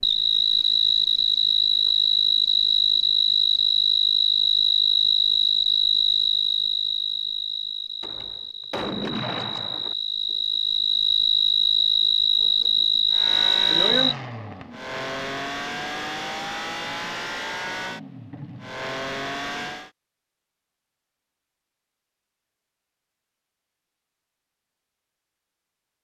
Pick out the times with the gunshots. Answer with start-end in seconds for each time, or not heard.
8.0-9.9.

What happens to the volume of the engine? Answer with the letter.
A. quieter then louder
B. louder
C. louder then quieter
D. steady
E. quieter
D.